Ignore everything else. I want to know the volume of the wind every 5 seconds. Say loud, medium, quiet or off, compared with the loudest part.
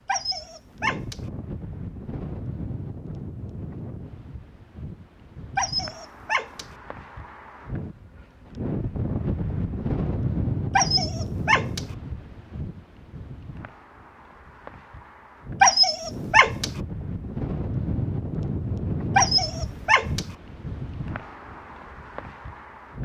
medium, loud, loud, loud, medium.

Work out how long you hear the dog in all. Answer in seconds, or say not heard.
6 s.